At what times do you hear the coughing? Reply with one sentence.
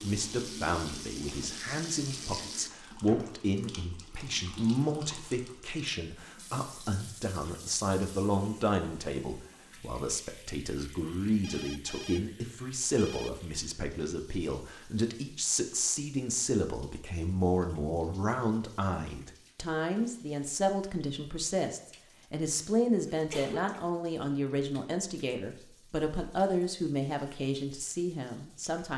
You can hear the coughing from 23.1 to 23.8 s.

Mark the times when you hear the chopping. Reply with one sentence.
The chopping can't be heard in this clip.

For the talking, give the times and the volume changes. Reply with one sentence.
The talking can be heard from 0.0 to 28.9 s, at a steady volume.